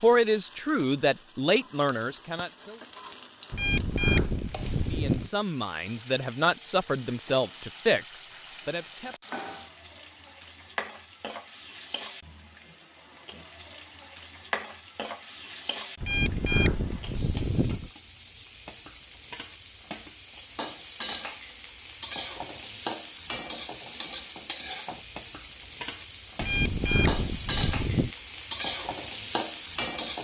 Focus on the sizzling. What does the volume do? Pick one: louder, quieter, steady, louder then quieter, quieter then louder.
louder.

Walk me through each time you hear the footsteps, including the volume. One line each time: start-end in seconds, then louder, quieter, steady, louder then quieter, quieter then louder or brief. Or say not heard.
not heard.